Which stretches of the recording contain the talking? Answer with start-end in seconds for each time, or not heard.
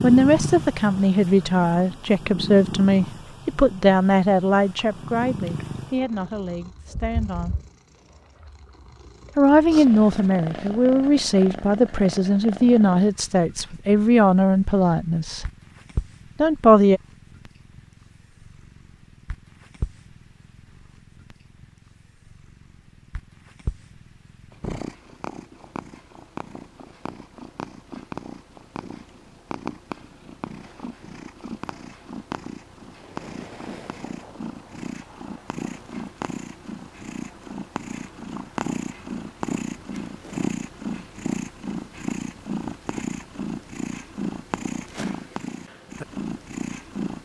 0.0-7.5, 9.3-15.4, 16.4-17.0.